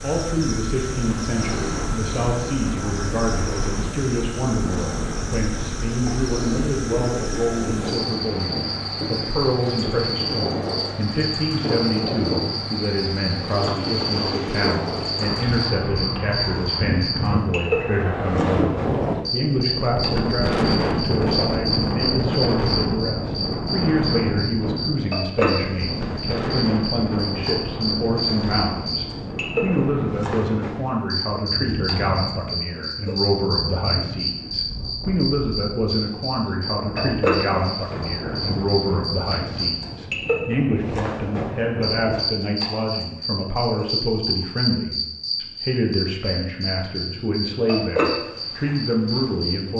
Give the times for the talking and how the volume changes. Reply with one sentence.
The talking can be heard from 0.0 to 49.7 s, at a steady volume.